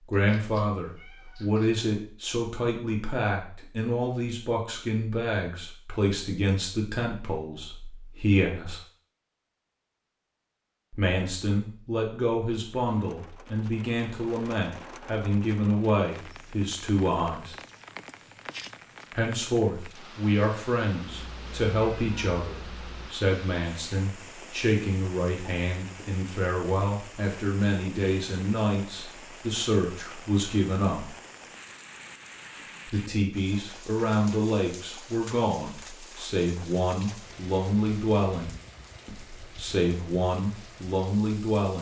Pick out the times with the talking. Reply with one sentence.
You can hear the talking from 0.1 to 8.8 s, from 10.9 to 17.6 s, from 19.1 to 31.1 s and from 32.9 to 41.7 s.